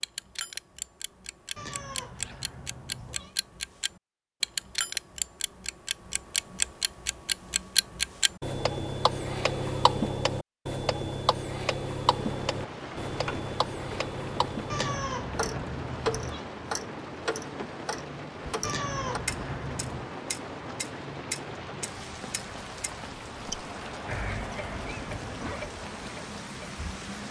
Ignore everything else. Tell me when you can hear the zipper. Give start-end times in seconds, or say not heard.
2.1-2.5, 13.1-13.5, 24.1-25.6.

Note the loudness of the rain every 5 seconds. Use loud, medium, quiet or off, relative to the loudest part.
off, off, loud, loud, loud, loud.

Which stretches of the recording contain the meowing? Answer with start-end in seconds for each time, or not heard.
1.6-3.4, 14.7-16.4, 18.6-20.1.